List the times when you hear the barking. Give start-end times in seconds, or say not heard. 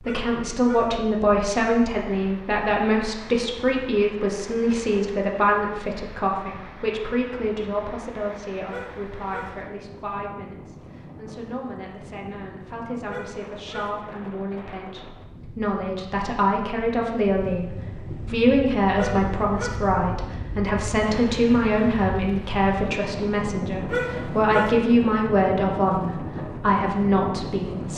0.0-0.9, 8.7-9.6, 13.1-14.0, 18.9-19.9, 23.9-24.8.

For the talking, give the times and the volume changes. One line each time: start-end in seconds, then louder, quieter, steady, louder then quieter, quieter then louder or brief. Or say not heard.
0.0-27.9 quieter then louder.